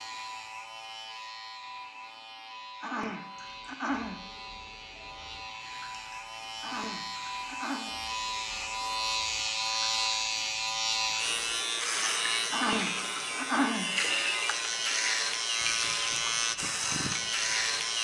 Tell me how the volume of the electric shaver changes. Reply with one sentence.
The loudness of the electric shaver goes up.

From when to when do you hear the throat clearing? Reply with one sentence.
The throat clearing can be heard from 2.8 to 4.2 s, from 6.6 to 7.9 s and from 12.5 to 13.9 s.